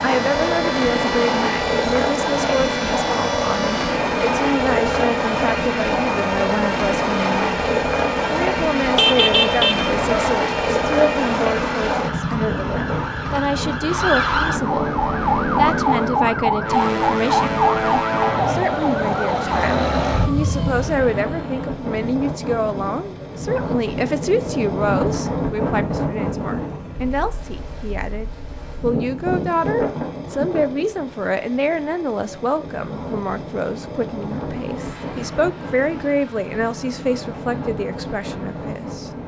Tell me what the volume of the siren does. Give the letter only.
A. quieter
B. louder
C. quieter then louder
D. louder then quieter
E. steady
B.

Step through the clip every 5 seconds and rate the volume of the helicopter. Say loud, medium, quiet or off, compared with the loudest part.
loud, loud, loud, medium, quiet, quiet, quiet, quiet.